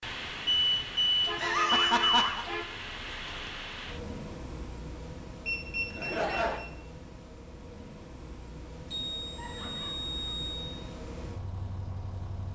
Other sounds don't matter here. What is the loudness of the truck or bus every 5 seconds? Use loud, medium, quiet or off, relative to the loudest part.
loud, medium, medium.